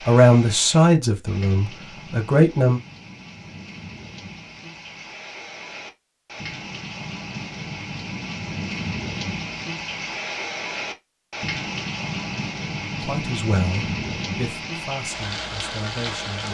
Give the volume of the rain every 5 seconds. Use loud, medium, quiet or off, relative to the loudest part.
medium, loud, loud, loud.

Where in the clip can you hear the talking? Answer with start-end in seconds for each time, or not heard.
0.1-2.8, 13.0-16.5.